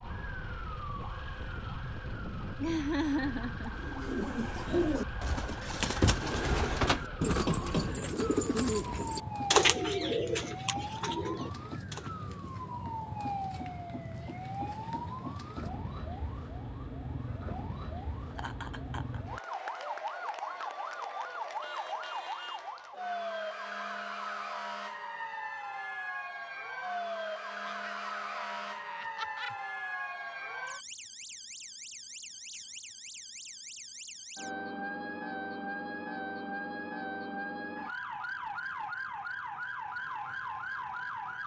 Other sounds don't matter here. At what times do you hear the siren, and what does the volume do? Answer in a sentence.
You can hear the siren from 0.0 to 41.4 s, at a steady volume.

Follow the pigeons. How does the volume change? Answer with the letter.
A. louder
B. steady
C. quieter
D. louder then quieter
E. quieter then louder
D.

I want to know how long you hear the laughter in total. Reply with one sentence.
The laughter can be heard for 4 seconds in total.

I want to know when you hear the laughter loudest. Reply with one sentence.
The loudest moment of the laughter is at 3 seconds.